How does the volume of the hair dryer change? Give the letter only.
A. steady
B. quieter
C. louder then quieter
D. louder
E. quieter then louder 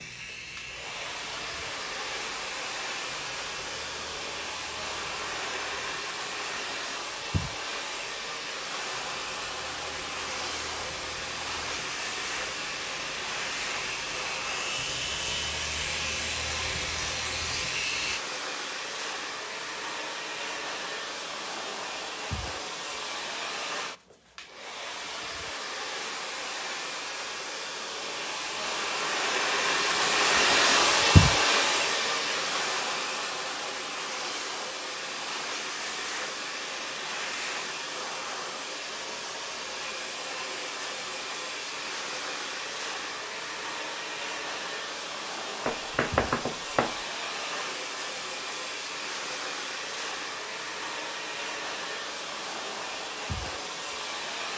C.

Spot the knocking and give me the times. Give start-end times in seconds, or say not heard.
45.6-47.0.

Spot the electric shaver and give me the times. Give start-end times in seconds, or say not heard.
0.0-18.2.